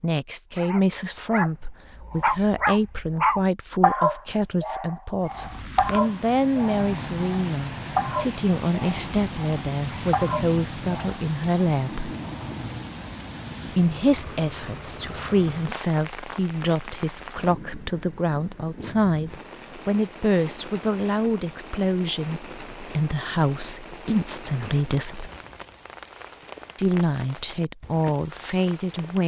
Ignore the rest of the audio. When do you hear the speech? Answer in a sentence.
You can hear the speech from 0.0 to 12.2 s, from 13.7 to 25.3 s and from 26.8 to 29.2 s.